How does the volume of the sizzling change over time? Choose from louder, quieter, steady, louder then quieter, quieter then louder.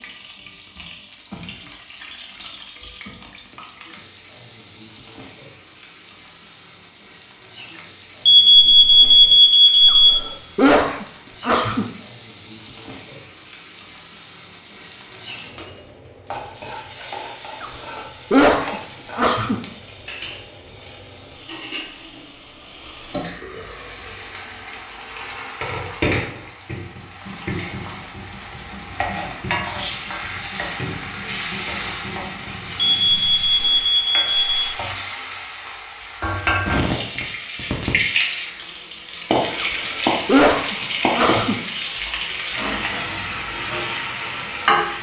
louder.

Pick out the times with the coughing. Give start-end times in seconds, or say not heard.
9.8-11.8, 17.6-19.6, 39.6-41.5.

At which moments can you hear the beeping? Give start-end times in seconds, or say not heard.
8.2-10.2, 33.0-34.6.